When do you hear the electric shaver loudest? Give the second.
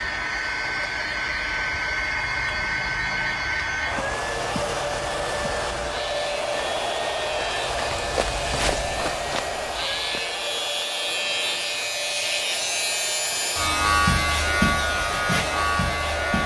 14 s.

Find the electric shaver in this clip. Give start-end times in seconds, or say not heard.
0.0-16.4.